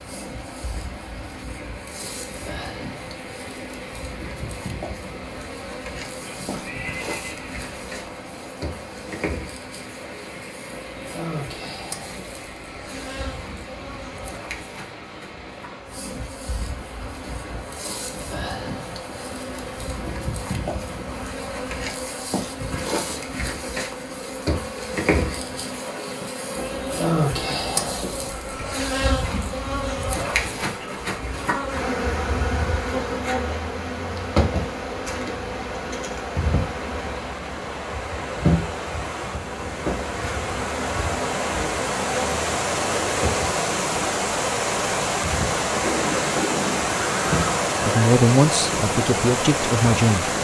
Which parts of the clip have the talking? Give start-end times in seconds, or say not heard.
47.8-50.3.